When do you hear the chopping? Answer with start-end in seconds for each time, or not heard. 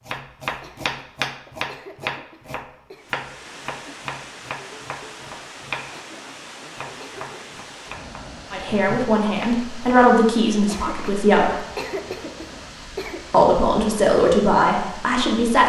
0.1-10.1.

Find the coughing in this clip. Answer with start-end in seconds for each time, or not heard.
0.5-3.1, 5.8-7.5, 10.5-13.2.